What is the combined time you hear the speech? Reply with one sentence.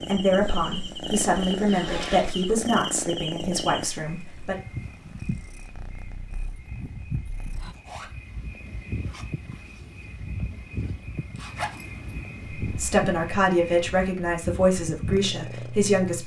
You can hear the speech for 8 seconds altogether.